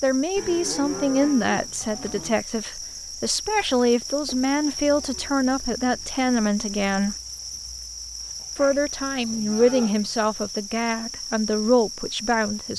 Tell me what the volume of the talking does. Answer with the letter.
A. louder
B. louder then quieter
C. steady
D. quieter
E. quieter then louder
C.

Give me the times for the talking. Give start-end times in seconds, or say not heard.
0.0-7.2, 8.6-12.7.